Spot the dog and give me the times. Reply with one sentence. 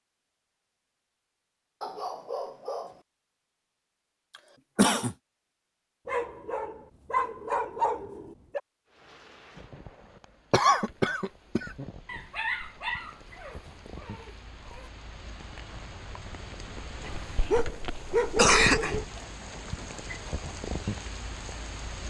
The dog can be heard from 1.8 to 3.0 s, from 6.0 to 8.6 s, from 12.1 to 14.9 s and from 17.0 to 19.1 s.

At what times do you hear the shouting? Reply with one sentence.
You can't hear the shouting here.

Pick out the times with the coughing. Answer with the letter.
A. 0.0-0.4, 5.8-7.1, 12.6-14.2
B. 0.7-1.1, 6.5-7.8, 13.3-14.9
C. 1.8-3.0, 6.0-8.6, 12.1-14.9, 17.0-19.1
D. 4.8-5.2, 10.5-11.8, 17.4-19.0
D.